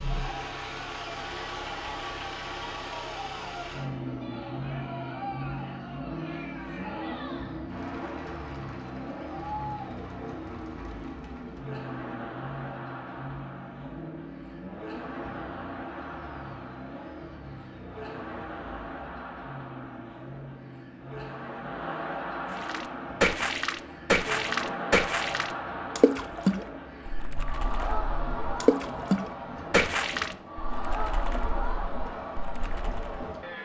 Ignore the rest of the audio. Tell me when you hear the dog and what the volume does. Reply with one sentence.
You can't hear the dog here.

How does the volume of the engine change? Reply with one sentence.
The loudness of the engine goes down.